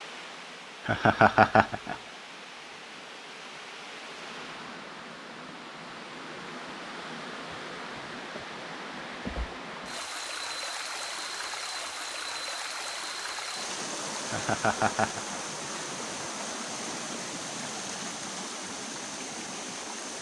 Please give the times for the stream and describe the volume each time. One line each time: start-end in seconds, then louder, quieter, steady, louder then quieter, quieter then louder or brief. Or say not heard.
0.0-20.1 louder.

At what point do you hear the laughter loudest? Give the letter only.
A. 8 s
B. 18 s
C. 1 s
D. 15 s
C.